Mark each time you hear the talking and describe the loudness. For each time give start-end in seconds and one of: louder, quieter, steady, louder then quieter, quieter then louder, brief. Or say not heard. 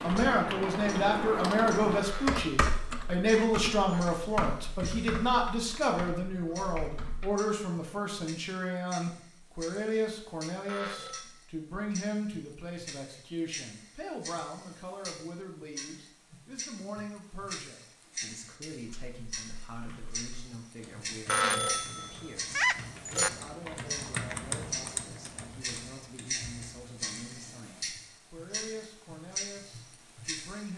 0.0-30.7 quieter.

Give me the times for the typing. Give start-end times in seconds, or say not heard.
0.0-7.3, 18.9-27.6.